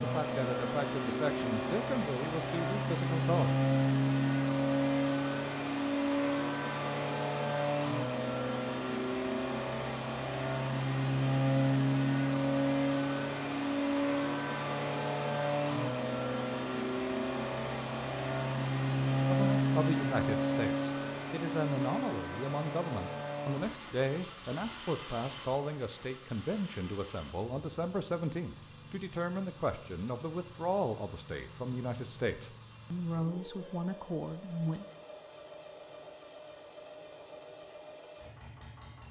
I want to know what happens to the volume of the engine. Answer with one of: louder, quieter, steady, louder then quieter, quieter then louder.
quieter.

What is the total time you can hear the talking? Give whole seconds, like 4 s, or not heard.
19 s.